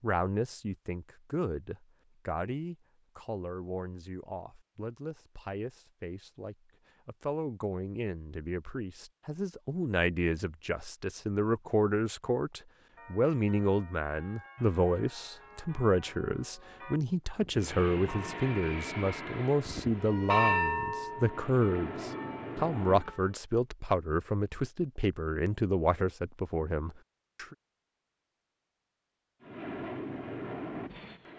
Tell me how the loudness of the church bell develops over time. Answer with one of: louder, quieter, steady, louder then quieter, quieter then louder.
louder then quieter.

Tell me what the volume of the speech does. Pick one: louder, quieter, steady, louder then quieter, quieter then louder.
louder.